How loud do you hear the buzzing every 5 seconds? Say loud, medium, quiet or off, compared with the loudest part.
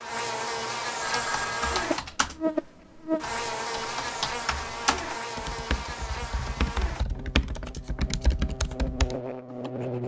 loud, medium.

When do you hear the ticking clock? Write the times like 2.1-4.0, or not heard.
not heard.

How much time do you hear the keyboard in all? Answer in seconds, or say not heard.
9 s.